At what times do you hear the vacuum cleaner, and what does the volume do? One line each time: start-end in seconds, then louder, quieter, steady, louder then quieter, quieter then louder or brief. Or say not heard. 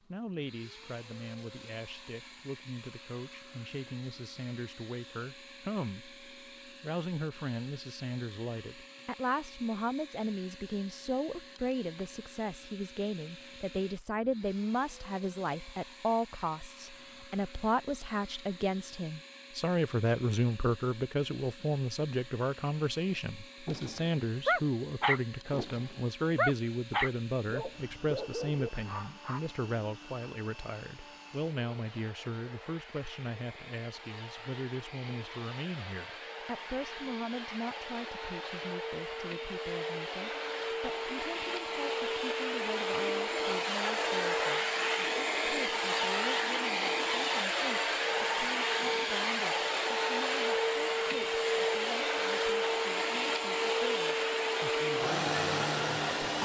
0.0-56.3 louder.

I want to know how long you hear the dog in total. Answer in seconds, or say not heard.
6 s.